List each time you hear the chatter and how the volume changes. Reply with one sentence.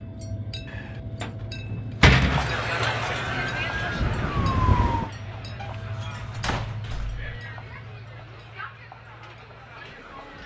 The chatter can be heard from 2.1 to 10.4 s, getting quieter.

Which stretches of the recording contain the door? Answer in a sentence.
You can hear the door from 0.7 to 2.5 s and from 5.5 to 7.2 s.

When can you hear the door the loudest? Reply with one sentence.
The loudest moment of the door is at 2 seconds.